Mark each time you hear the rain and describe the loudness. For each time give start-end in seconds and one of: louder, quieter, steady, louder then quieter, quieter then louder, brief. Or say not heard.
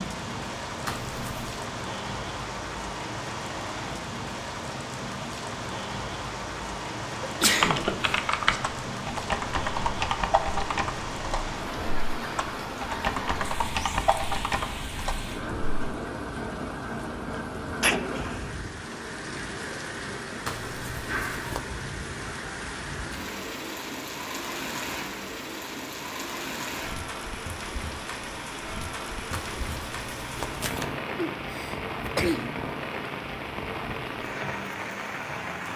0.0-35.7 steady.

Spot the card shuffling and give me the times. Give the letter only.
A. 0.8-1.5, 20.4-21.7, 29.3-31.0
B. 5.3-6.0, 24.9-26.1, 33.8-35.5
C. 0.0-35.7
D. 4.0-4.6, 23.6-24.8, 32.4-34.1
A.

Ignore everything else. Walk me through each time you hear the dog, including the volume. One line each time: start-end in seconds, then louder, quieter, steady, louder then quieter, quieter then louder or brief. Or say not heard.
not heard.